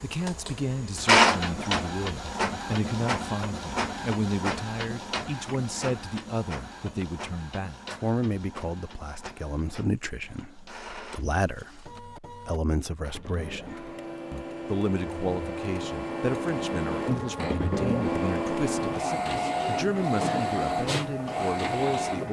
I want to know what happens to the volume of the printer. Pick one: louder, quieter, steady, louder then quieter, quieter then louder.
quieter then louder.